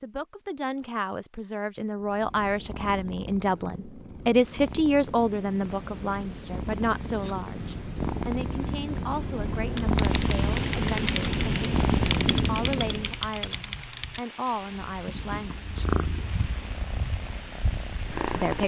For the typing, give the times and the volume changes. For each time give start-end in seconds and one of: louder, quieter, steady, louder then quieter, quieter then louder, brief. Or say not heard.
9.8-14.2 steady.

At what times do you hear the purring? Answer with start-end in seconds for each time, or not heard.
1.9-13.2, 14.8-18.6.